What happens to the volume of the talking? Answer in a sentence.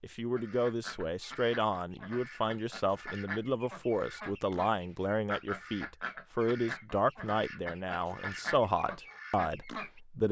The loudness of the talking stays about the same.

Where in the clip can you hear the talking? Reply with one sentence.
The talking can be heard from 0.0 to 10.2 s.